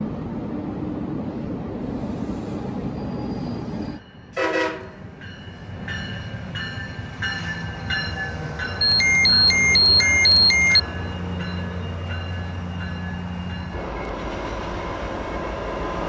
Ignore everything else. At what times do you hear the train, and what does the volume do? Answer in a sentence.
The train can be heard from 0.0 to 16.0 s, at a steady volume.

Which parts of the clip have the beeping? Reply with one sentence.
The beeping can be heard from 8.8 to 10.8 s.